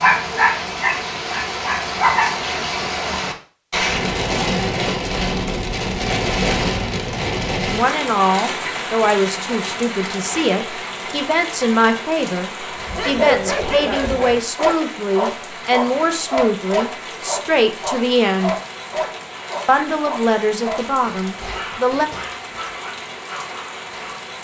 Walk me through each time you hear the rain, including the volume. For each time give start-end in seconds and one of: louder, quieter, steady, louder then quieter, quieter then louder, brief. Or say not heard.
0.0-24.3 quieter.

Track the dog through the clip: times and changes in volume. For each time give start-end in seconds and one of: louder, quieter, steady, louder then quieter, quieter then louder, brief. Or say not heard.
0.0-2.4 brief
12.7-24.2 quieter.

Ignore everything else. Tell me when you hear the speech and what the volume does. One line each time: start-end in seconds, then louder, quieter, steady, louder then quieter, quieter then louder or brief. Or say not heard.
7.7-18.6 steady
19.6-22.1 brief.